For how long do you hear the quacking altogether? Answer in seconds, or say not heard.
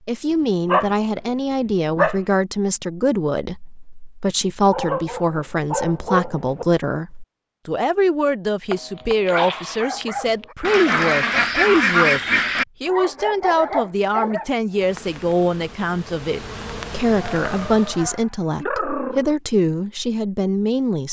2 s.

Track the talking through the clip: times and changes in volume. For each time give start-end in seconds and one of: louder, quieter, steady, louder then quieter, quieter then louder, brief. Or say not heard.
0.1-21.0 steady.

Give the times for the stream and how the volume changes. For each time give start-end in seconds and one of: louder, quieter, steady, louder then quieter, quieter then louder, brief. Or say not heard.
not heard.